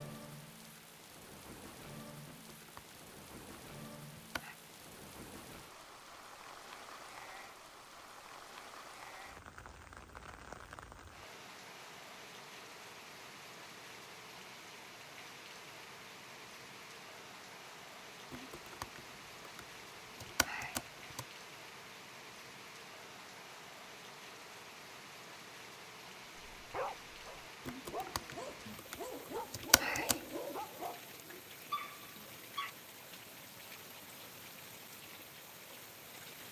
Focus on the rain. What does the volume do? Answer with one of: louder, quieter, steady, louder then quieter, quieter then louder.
steady.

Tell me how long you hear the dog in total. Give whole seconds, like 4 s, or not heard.
6 s.